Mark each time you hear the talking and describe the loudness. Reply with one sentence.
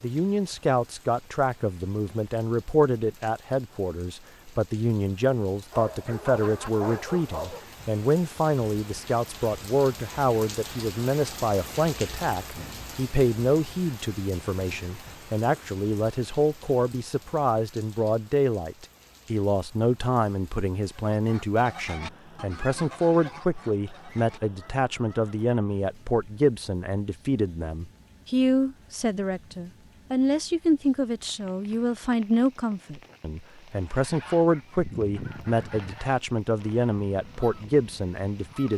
The talking can be heard from 0.0 to 38.7 s, at a steady volume.